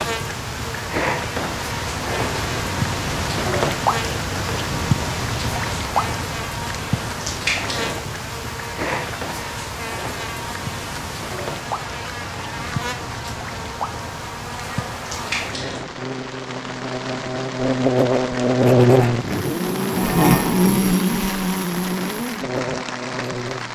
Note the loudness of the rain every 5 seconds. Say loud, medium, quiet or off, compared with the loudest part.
loud, loud, medium, medium, medium.